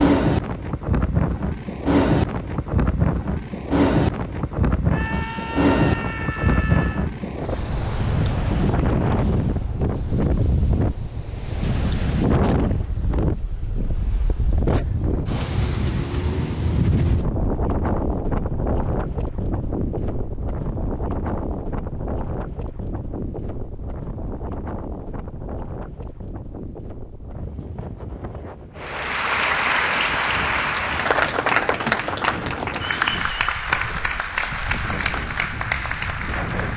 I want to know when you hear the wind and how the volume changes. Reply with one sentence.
You can hear the wind from 0.0 to 36.7 s, getting quieter.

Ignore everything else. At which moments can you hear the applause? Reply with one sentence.
You can hear the applause from 28.8 to 36.7 s.